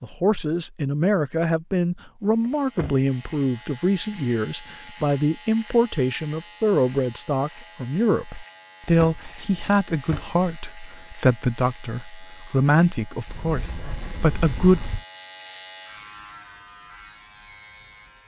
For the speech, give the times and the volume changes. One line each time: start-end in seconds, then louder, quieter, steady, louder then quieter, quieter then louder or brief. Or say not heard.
0.0-14.8 steady.